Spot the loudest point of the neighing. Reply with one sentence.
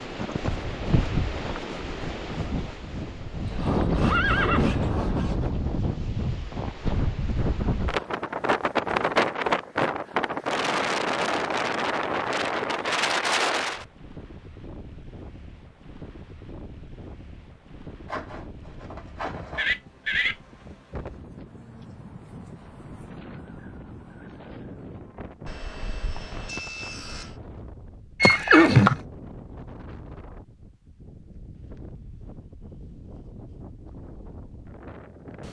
The volume of the neighing peaks at 29 seconds.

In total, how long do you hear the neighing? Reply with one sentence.
The neighing can be heard for 3 seconds in total.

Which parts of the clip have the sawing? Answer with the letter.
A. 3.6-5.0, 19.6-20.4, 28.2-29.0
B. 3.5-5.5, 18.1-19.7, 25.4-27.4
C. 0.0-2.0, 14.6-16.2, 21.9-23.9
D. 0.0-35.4
B.